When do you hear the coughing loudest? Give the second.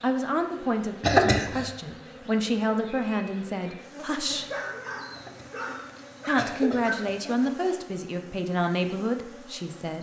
1 s.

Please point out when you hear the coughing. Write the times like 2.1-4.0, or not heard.
1.0-1.7, 5.2-7.5.